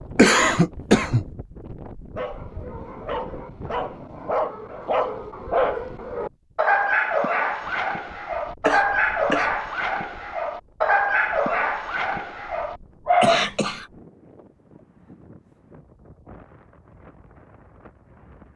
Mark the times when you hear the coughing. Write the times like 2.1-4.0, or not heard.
0.1-1.2, 8.7-9.6, 13.2-13.9.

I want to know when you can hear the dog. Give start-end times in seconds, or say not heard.
2.1-13.4.